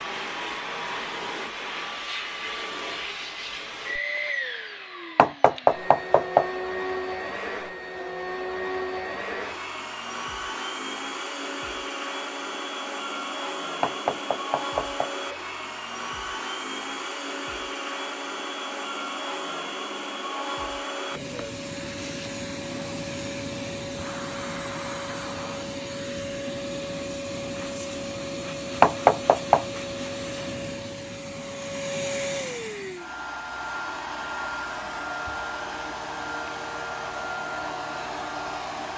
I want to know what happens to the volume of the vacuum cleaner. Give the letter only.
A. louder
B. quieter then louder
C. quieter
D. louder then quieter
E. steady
E.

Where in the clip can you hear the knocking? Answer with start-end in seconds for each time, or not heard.
5.2-6.5, 13.8-15.1, 28.8-29.6.